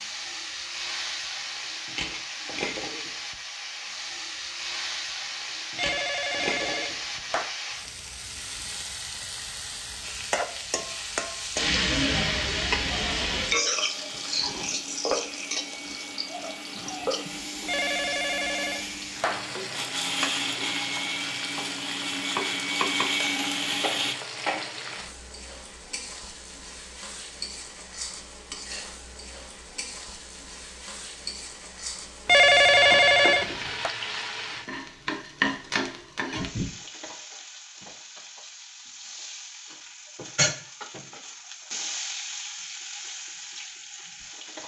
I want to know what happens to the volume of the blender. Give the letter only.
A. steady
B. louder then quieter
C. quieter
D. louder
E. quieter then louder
D.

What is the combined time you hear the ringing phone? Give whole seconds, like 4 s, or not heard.
5 s.